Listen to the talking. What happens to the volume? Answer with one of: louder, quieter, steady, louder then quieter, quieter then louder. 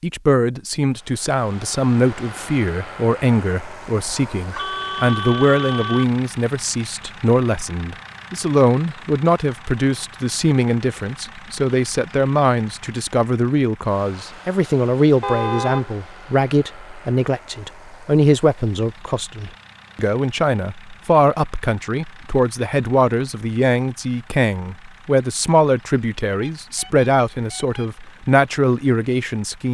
steady.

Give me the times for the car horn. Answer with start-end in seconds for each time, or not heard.
4.0-6.0, 15.2-15.8, 26.3-27.9.